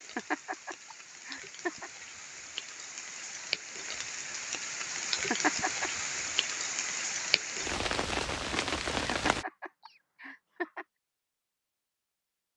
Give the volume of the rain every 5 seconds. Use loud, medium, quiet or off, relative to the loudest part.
medium, loud, off.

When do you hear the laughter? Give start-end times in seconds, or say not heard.
0.1-1.9, 5.3-5.9, 9.1-10.8.